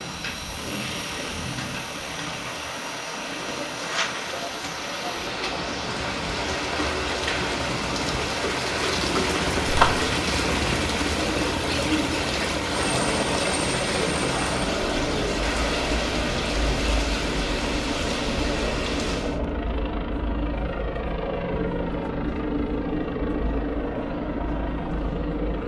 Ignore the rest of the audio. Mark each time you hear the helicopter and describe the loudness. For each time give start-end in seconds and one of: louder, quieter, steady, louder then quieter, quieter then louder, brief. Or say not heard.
0.0-25.6 louder.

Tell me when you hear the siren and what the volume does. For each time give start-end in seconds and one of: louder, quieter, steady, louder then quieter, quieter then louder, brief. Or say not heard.
not heard.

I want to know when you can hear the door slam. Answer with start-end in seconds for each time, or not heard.
9.7-10.1.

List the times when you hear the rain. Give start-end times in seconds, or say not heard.
0.0-19.4.